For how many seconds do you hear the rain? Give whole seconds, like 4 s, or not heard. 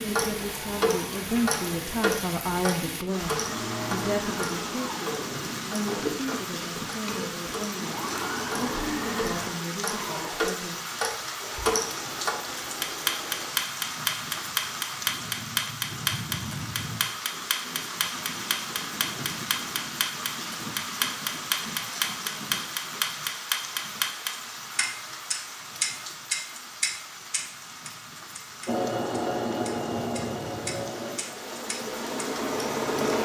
33 s.